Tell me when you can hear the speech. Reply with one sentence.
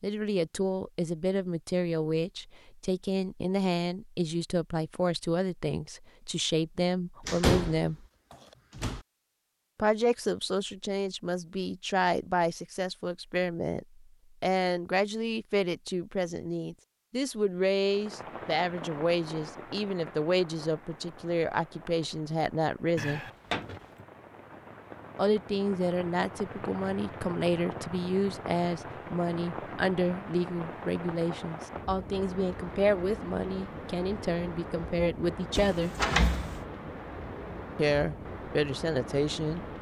The speech can be heard from 0.0 to 8.1 s, from 9.8 to 23.2 s, from 25.1 to 36.0 s and from 37.8 to 39.6 s.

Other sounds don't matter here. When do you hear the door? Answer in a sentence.
The door can be heard from 7.2 to 9.0 s, from 22.9 to 24.1 s and from 35.5 to 36.6 s.